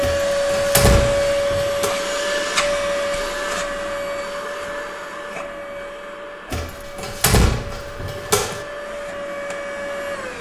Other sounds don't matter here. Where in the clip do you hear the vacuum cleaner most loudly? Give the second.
1 s.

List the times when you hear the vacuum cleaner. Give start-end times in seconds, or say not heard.
0.0-10.3.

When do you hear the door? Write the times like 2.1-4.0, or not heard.
0.0-1.9, 6.5-8.7.